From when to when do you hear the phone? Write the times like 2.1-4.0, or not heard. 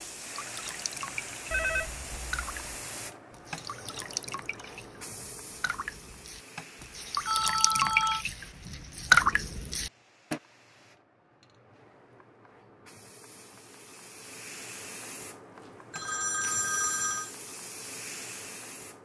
1.5-2.5, 7.2-8.2, 15.9-17.3.